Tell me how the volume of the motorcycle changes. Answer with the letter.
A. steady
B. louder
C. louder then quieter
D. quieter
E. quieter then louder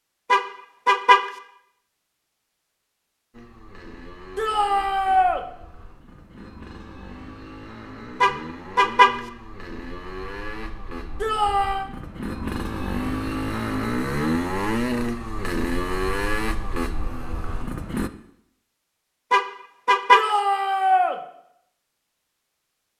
B.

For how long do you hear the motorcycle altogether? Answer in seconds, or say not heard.
15 s.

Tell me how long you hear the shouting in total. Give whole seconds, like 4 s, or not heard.
3 s.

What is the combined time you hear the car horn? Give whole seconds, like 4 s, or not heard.
3 s.